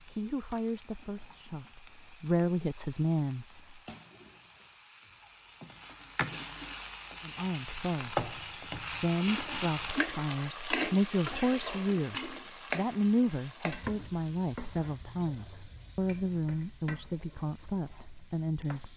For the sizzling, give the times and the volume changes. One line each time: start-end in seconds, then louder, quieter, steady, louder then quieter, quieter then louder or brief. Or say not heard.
0.0-18.9 louder then quieter.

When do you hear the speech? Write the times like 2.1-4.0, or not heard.
0.1-3.8, 7.2-18.9.